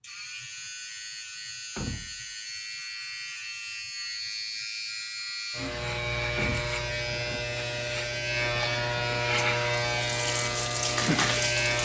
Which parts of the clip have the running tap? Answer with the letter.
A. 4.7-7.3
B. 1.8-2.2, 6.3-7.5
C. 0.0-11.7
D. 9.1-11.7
D.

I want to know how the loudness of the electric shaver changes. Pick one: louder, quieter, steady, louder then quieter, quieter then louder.
louder.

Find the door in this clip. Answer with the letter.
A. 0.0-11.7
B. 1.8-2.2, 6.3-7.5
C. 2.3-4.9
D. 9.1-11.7
B.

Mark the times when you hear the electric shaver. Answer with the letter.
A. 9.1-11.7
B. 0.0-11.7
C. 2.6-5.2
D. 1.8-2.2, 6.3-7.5
B.